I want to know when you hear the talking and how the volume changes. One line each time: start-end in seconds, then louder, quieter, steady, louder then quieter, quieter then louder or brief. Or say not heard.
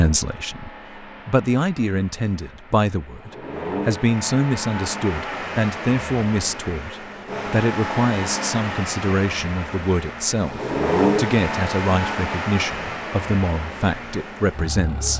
0.0-15.1 steady.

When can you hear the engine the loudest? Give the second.
11 s.